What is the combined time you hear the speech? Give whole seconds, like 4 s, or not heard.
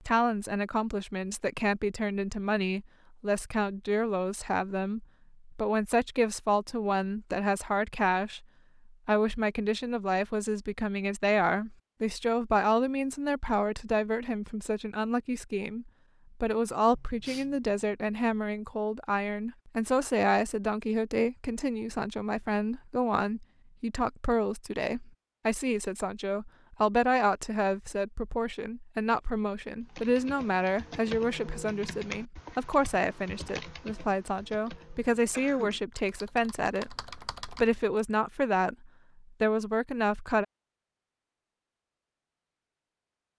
40 s.